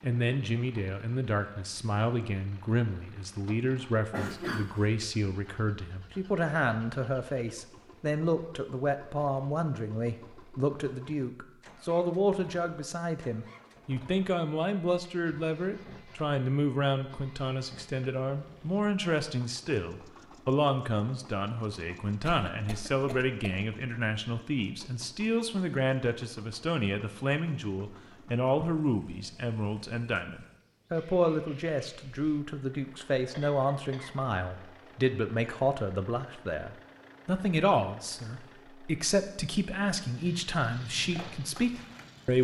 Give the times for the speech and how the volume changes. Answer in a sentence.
The speech can be heard from 0.0 to 42.3 s, at a steady volume.